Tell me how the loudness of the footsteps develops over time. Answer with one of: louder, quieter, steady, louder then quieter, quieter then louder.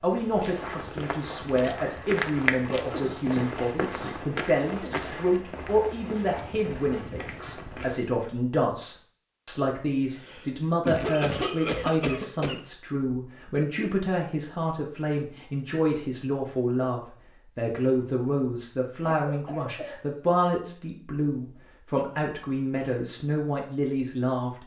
louder then quieter.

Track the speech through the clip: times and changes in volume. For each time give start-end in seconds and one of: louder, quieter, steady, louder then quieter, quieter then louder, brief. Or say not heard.
0.0-24.6 steady.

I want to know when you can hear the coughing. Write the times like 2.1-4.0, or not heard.
2.9-5.2, 10.0-12.6, 19.0-20.5.